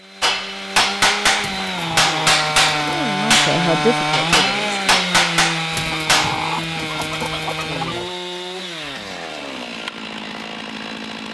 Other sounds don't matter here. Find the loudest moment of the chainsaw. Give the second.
4 s.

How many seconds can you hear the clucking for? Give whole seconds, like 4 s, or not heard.
4 s.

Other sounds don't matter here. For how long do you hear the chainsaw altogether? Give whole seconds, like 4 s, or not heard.
11 s.